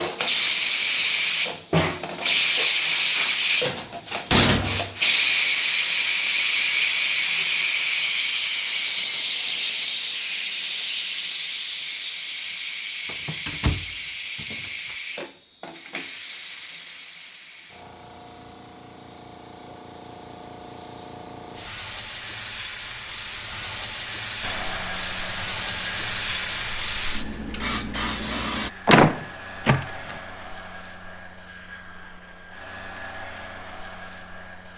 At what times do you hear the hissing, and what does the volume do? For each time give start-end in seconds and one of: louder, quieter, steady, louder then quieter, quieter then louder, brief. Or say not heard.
0.0-28.7 quieter then louder.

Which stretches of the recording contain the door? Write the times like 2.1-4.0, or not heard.
3.6-5.0, 13.1-14.9, 28.9-30.1.